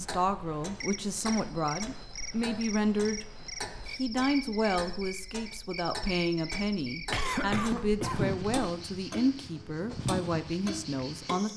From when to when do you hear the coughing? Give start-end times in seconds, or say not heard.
7.1-8.5.